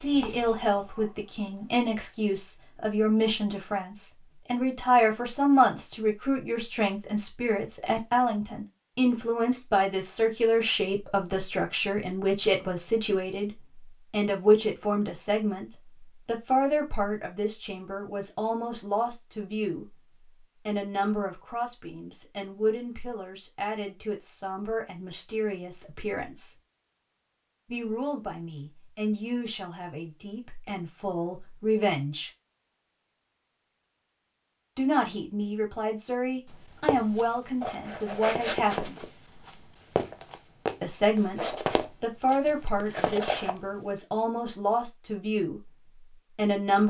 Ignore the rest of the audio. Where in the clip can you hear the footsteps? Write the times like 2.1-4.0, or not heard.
36.5-44.0.